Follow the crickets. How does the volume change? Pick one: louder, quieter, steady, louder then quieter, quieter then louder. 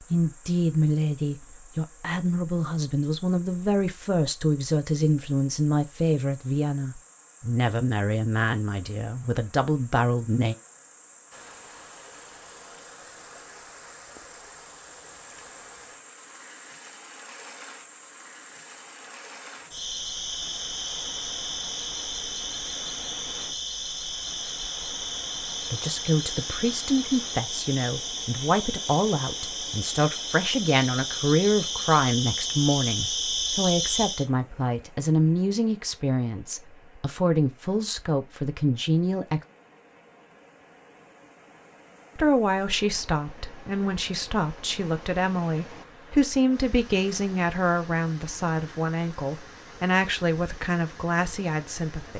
louder.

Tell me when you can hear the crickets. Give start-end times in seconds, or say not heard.
0.0-34.2.